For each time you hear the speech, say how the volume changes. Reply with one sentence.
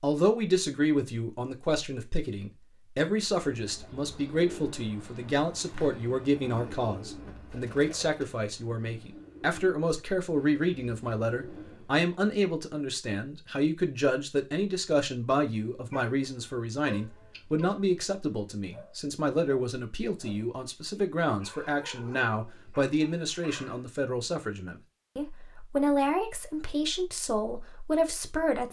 You can hear the speech from 0.0 to 28.6 s, at a steady volume.